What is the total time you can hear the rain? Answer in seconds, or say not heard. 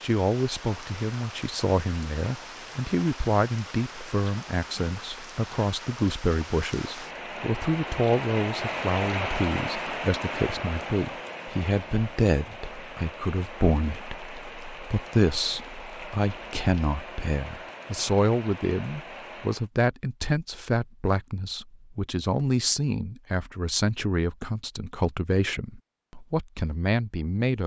20 s.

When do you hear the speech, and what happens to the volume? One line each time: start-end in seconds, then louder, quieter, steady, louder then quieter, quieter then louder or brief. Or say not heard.
0.0-27.6 steady.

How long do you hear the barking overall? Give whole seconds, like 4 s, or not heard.
not heard.